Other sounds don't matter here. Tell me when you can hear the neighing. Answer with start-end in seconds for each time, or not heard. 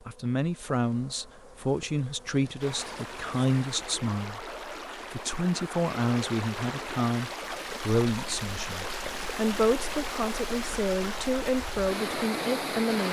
not heard.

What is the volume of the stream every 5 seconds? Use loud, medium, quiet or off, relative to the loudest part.
medium, loud, loud.